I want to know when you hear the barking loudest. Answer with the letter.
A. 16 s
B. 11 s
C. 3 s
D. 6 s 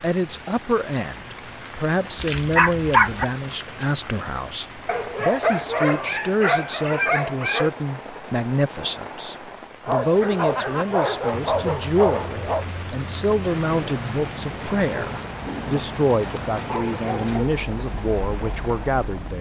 C.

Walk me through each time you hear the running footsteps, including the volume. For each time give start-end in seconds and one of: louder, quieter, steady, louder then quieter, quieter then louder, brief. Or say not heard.
not heard.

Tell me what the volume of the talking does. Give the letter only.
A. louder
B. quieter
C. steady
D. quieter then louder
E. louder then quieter
C.